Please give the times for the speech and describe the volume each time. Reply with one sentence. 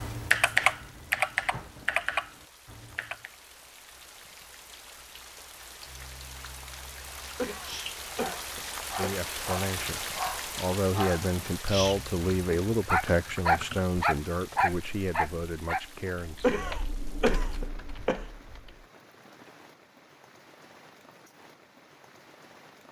You can hear the speech from 8.9 to 16.8 s, getting louder then quieter.